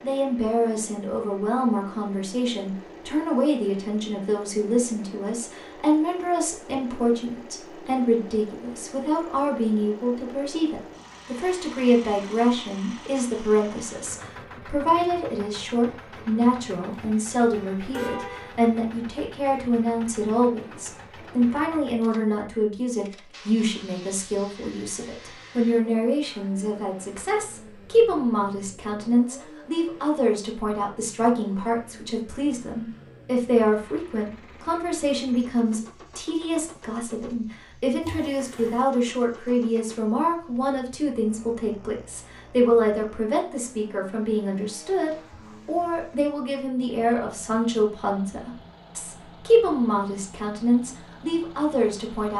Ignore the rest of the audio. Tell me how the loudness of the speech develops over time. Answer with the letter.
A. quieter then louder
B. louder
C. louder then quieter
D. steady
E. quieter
D.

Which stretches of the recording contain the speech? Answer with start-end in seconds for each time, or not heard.
0.0-52.3.